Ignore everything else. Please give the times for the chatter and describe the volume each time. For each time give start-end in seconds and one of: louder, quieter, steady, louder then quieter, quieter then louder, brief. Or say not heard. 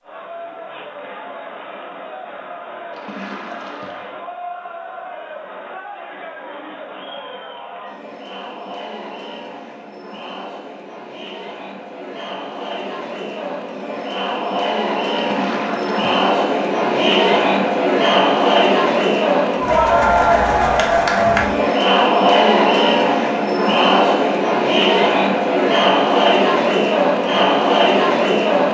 0.0-28.6 louder.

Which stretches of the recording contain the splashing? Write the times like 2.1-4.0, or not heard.
2.9-4.2, 15.2-16.1.